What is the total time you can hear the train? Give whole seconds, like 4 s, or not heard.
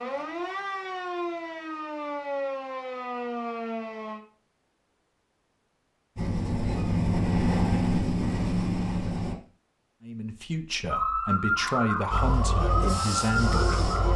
5 s.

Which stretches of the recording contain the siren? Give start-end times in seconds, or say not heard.
0.0-4.2, 10.9-14.1.